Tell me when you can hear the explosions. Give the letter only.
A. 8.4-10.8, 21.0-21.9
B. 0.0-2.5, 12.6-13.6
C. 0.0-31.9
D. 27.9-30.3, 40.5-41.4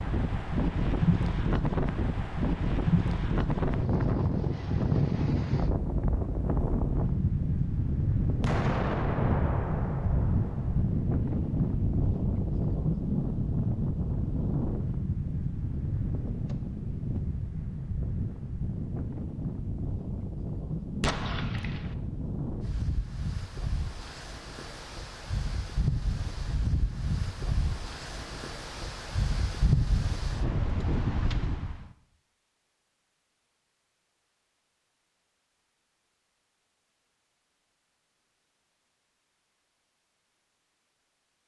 A.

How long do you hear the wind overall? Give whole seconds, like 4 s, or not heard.
32 s.